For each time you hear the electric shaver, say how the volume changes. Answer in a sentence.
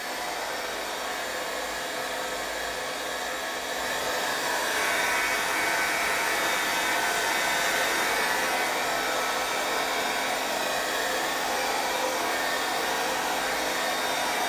The electric shaver can be heard from 4.7 to 8.8 s, at a steady volume.